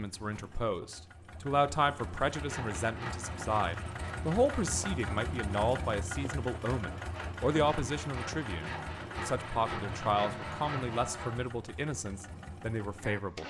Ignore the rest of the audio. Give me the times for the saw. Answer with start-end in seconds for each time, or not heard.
2.2-11.5.